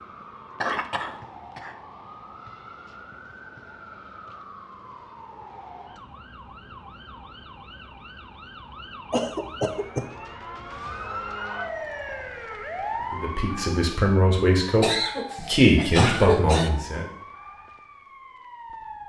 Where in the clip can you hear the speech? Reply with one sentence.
You can hear the speech from 13.1 to 17.1 s.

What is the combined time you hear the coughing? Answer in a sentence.
You can hear the coughing for 4 seconds altogether.